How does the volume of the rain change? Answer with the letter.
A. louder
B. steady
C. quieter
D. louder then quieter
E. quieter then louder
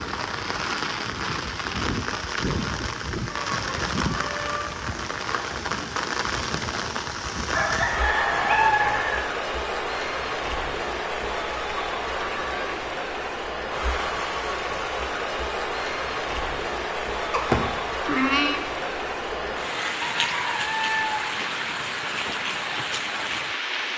B.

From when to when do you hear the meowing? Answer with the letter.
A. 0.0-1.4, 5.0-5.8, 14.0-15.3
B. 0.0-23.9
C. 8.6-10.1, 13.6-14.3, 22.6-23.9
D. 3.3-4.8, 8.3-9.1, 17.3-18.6
D.